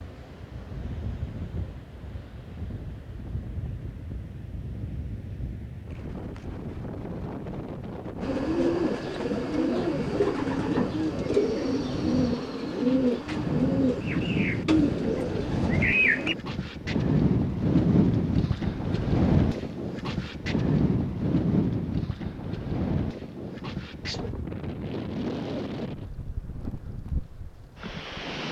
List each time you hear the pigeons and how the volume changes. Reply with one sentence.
You can hear the pigeons from 8.2 to 16.4 s, at a steady volume.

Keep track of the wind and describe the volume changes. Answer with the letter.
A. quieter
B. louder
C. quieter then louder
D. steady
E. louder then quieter
E.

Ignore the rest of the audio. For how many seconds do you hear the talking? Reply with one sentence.
The talking can't be heard in this clip.